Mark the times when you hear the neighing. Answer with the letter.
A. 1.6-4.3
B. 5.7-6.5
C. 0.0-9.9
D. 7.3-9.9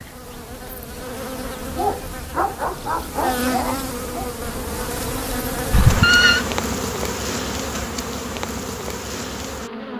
B.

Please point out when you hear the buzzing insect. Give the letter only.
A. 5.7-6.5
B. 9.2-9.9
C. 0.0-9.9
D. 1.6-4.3
C.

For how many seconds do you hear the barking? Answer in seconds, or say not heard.
3 s.